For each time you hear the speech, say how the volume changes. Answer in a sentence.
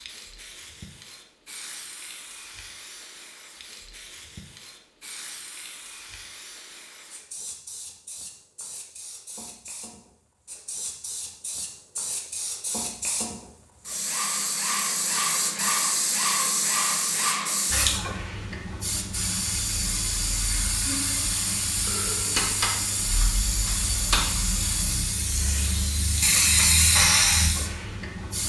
The speech can't be heard in this clip.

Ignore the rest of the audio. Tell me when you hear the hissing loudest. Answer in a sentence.
The loudest moment of the hissing is at 27 seconds.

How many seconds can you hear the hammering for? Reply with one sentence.
The hammering can be heard for 2 seconds in total.